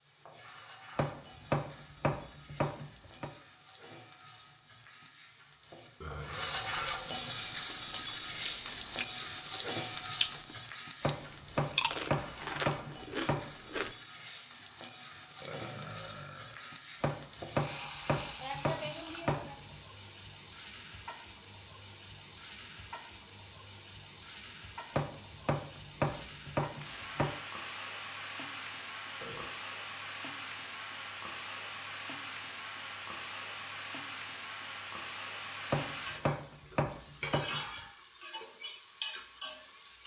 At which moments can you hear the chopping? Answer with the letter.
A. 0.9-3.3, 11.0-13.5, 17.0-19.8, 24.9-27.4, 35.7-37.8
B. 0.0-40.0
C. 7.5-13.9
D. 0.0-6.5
A.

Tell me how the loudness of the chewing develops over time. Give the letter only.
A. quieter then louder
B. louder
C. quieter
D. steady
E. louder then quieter
B.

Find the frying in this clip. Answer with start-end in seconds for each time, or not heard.
0.0-40.0.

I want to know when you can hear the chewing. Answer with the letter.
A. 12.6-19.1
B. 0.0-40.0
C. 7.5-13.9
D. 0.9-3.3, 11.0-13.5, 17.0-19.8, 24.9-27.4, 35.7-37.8
C.